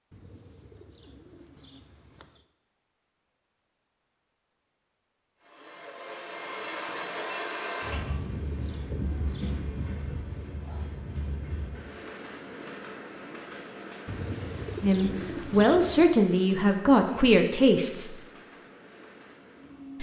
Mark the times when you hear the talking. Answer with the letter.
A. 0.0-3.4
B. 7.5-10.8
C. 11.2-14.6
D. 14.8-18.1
D.